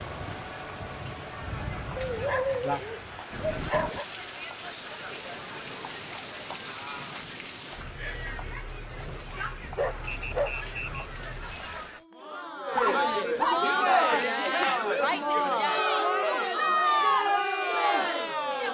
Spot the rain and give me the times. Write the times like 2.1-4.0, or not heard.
0.0-12.1.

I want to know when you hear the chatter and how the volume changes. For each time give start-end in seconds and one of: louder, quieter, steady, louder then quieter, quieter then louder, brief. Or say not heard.
0.0-18.6 louder.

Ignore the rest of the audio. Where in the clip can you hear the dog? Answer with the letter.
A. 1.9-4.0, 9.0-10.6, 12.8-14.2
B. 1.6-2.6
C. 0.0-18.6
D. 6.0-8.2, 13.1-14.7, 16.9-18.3
A.